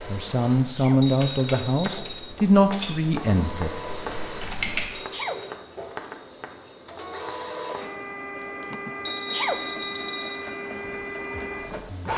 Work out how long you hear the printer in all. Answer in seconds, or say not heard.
12 s.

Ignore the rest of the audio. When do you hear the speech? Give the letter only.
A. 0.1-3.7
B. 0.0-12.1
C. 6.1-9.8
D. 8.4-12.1
A.